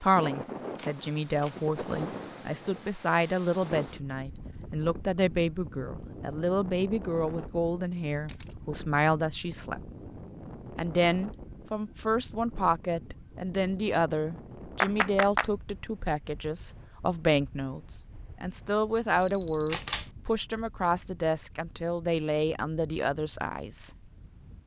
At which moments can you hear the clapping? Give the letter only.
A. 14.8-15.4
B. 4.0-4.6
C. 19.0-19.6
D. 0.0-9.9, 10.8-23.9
A.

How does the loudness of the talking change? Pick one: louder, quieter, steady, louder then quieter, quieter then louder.
steady.